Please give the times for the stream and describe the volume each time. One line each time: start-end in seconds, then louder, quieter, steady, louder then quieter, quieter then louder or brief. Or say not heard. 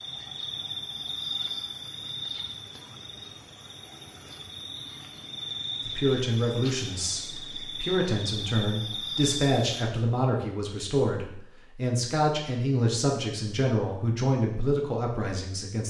not heard.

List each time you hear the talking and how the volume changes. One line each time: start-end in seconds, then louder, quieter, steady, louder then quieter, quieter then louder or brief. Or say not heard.
5.8-15.8 steady.